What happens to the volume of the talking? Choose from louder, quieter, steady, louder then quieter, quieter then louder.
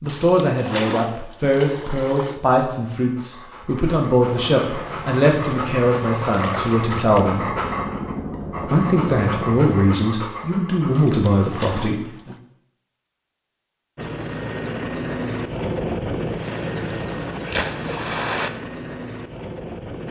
steady.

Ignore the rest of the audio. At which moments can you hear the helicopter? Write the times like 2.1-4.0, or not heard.
4.2-9.9, 13.9-20.0.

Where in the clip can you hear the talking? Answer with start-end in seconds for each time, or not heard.
0.0-7.5, 8.6-12.3.